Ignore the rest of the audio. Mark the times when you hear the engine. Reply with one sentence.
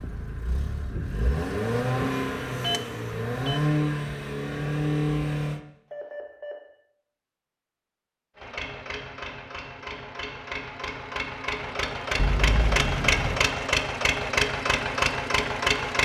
The engine can be heard from 0.0 to 5.6 s and from 8.3 to 16.0 s.